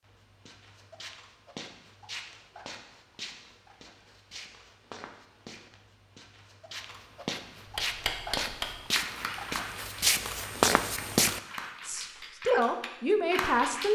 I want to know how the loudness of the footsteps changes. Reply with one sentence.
The volume of the footsteps goes up.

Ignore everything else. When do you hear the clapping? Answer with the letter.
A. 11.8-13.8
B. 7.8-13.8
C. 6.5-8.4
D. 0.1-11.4
B.